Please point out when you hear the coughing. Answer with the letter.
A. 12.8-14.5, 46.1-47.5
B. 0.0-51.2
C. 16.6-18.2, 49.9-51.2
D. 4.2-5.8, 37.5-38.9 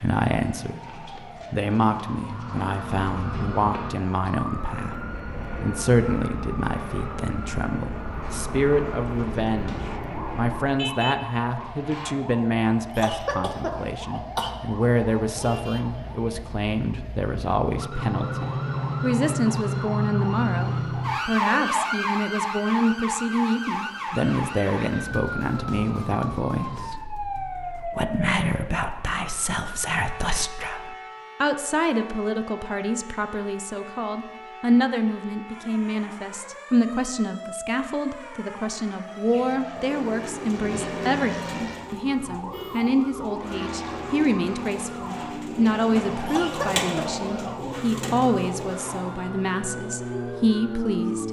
A.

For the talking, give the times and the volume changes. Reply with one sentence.
You can hear the talking from 0.0 to 51.2 s, at a steady volume.